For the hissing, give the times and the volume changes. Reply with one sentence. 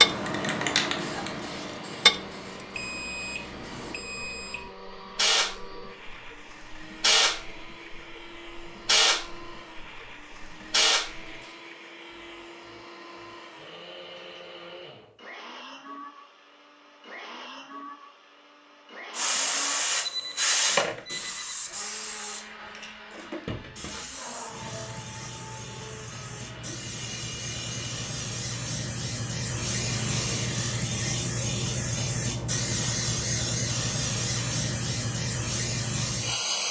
You can hear the hissing from 0.0 to 11.4 s, getting quieter then louder; and from 19.1 to 36.6 s, getting quieter then louder.